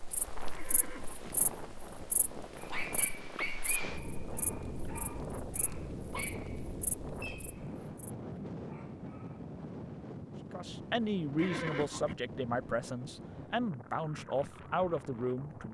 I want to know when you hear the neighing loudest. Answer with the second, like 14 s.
12 s.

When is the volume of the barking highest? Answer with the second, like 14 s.
4 s.